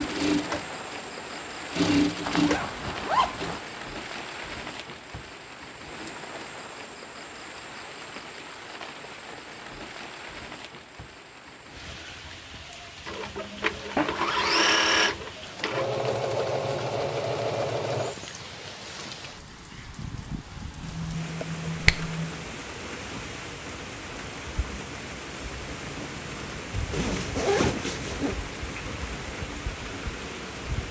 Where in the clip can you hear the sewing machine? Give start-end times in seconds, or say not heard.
0.0-3.6, 13.1-18.1.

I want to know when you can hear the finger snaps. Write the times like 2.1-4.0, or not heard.
20.8-22.4.